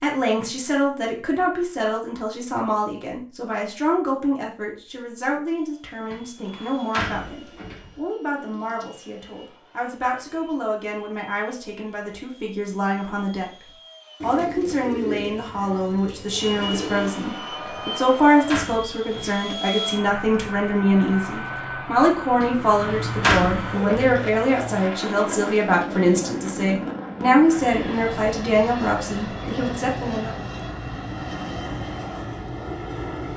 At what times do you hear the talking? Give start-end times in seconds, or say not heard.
0.0-30.4.